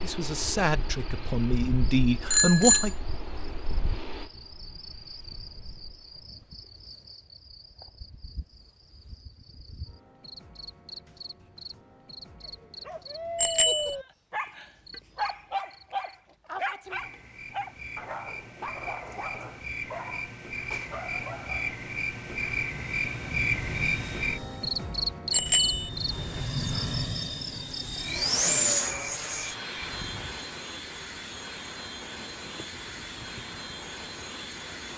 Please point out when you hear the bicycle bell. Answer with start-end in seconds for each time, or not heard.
2.3-2.9, 13.3-13.9, 25.3-25.9.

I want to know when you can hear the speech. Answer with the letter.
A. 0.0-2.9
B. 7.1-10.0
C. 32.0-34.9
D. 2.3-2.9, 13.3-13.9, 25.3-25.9
A.